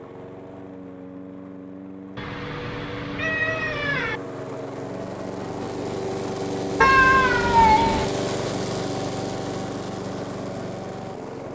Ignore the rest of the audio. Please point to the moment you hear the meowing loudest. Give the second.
7 s.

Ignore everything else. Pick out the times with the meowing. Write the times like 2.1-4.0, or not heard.
2.1-4.2, 6.8-8.1.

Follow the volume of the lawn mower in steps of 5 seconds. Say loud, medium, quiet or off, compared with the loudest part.
medium, loud, medium.